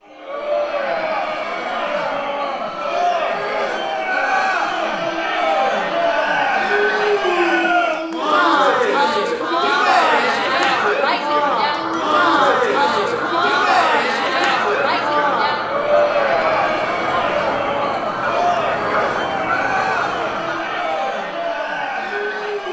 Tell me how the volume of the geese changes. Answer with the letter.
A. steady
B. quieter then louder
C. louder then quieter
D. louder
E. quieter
A.